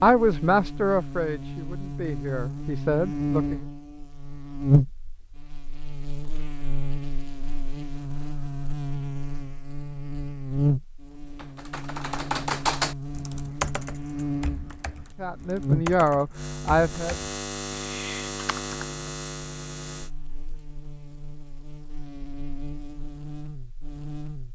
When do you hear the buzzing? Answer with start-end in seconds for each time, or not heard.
0.0-24.5.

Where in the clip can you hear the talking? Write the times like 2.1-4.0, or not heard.
0.0-3.6, 15.2-17.1.